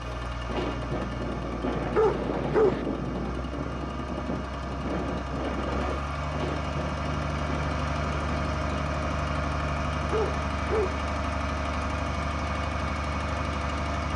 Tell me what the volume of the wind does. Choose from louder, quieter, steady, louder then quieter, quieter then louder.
quieter.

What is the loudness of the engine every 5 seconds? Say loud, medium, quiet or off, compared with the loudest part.
medium, loud, loud.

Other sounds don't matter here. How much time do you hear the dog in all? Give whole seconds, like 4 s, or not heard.
2 s.